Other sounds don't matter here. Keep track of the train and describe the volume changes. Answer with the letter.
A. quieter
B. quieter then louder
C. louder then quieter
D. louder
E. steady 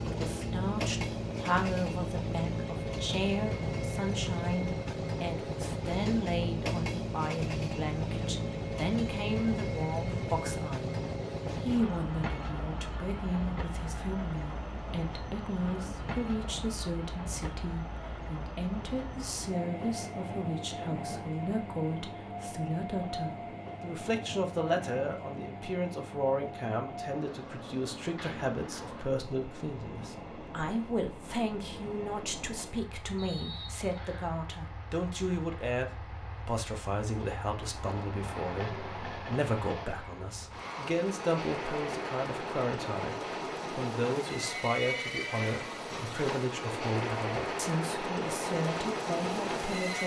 B.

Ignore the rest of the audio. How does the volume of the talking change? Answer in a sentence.
The loudness of the talking stays about the same.